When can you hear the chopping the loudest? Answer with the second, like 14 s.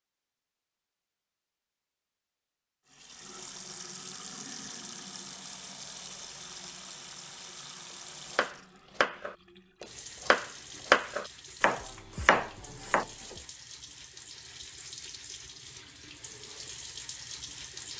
11 s.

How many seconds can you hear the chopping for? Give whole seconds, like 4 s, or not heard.
5 s.